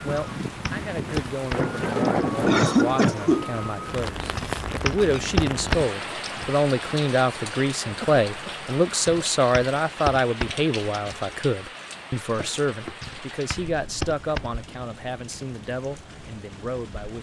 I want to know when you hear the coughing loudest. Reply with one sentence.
The volume of the coughing peaks at 3 seconds.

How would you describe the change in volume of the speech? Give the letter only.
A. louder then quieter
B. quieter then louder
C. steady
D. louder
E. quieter
A.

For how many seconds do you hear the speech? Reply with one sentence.
The speech can be heard for 17 seconds in total.